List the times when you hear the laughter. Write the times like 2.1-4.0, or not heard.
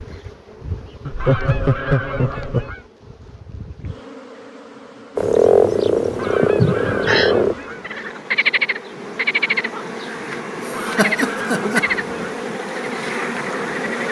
1.1-2.7, 6.4-7.3, 10.6-11.8.